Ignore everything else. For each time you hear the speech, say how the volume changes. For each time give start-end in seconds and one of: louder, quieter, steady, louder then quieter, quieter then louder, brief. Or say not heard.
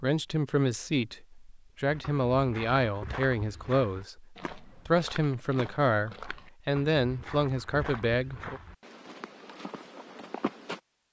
0.0-8.6 steady.